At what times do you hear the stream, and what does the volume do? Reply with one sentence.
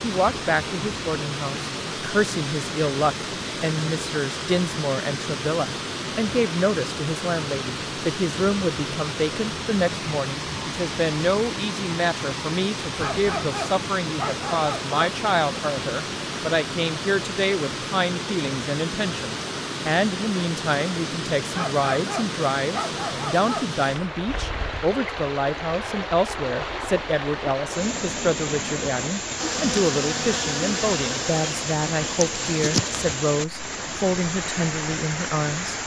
The stream can be heard from 0.0 to 35.8 s, at a steady volume.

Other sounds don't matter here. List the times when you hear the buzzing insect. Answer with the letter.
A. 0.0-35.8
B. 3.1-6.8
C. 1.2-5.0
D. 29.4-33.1
D.